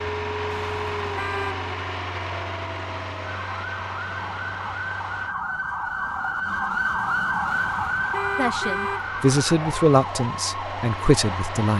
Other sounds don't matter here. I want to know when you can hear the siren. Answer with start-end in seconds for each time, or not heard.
0.2-11.7.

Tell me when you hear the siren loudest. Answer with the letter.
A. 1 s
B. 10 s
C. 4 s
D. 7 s
D.